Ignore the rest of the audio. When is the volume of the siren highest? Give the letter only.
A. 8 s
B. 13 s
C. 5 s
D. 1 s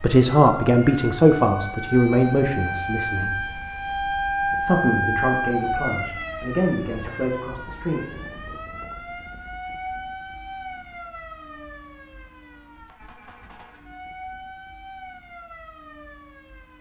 C.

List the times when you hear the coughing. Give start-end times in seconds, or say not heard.
not heard.